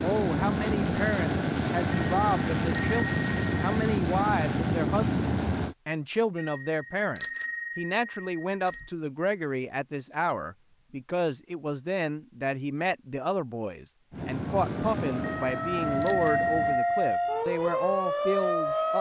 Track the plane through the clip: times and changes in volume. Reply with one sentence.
You can hear the plane from 0.0 to 5.8 s, at a steady volume; and briefly from 14.1 to 16.8 s.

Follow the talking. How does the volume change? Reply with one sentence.
The volume of the talking stays about the same.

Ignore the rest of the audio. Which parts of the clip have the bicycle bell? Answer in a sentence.
You can hear the bicycle bell from 1.9 to 3.5 s, from 6.3 to 8.8 s and from 15.2 to 17.1 s.